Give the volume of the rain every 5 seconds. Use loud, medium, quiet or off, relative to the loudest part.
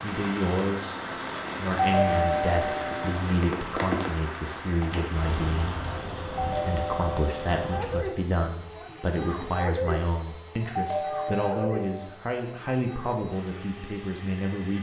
loud, loud, off.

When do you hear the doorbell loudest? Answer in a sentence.
The loudest moment of the doorbell is at 2 seconds.